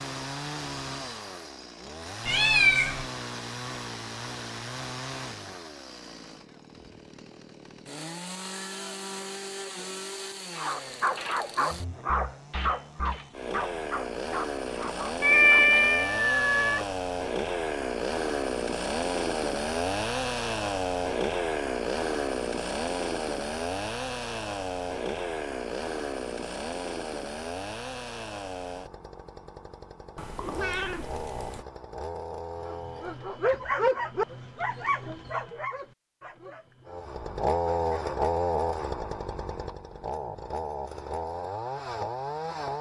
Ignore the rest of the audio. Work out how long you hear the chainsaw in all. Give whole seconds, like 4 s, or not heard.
39 s.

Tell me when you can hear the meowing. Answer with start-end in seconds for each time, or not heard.
2.2-3.0, 15.2-16.9, 30.1-31.6.